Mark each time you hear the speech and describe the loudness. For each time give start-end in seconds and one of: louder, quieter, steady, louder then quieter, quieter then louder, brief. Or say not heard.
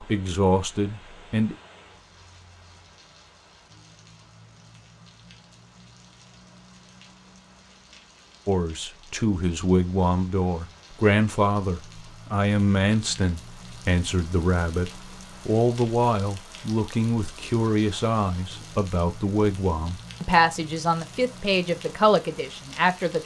0.0-1.6 brief
8.4-23.2 steady.